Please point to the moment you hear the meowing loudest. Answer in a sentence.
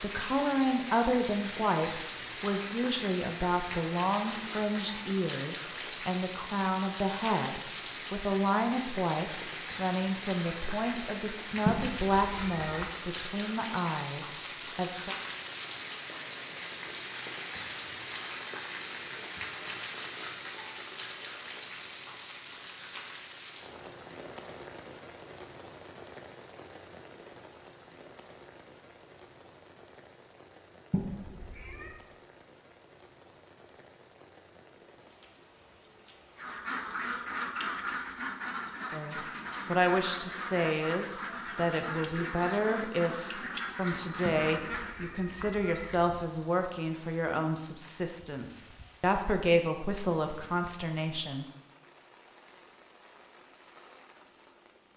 The volume of the meowing peaks at 12 seconds.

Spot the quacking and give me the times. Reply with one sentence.
You can hear the quacking from 36.4 to 45.1 s.